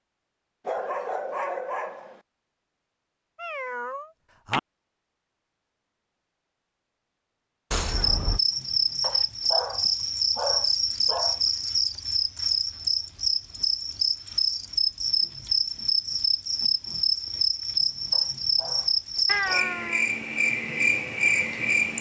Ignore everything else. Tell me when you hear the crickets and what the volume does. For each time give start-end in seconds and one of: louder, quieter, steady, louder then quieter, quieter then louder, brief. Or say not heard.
7.8-21.9 steady.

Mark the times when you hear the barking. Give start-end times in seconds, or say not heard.
0.7-2.2, 9.0-11.4, 18.1-19.8.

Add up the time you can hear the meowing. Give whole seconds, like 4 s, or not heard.
3 s.